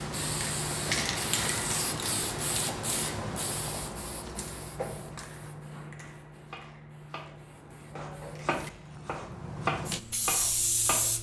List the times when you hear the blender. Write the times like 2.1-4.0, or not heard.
not heard.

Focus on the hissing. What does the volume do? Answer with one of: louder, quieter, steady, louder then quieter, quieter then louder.
quieter then louder.